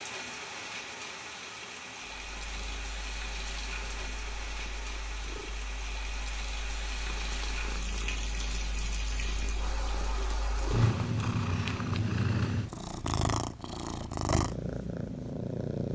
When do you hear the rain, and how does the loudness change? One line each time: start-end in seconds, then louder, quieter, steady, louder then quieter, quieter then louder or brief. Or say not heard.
0.0-11.0 steady.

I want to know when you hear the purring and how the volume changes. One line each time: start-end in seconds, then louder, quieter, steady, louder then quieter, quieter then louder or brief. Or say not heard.
2.2-15.9 louder.